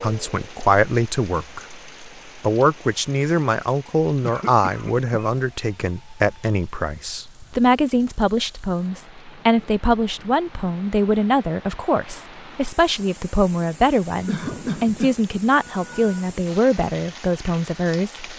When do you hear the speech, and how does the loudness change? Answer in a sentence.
The speech can be heard from 0.0 to 18.3 s, at a steady volume.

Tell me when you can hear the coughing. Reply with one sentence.
The coughing can be heard from 4.2 to 5.3 s and from 14.2 to 16.2 s.